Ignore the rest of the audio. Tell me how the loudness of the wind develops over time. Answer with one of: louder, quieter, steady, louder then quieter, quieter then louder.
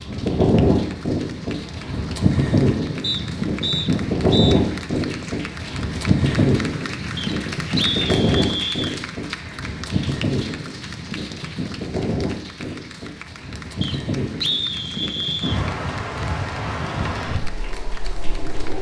quieter.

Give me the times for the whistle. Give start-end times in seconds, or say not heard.
3.0-4.5, 7.2-8.9, 13.8-15.6.